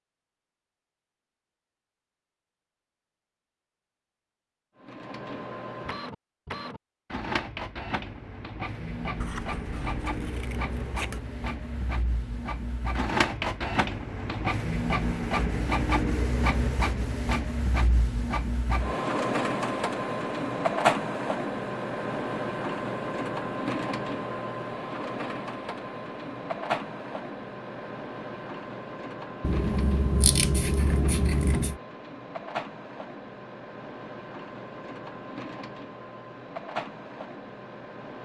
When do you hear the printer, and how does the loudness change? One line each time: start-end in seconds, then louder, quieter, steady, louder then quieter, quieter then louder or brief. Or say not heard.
4.8-38.1 louder then quieter.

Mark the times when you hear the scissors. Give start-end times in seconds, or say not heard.
9.2-11.2, 29.4-31.8.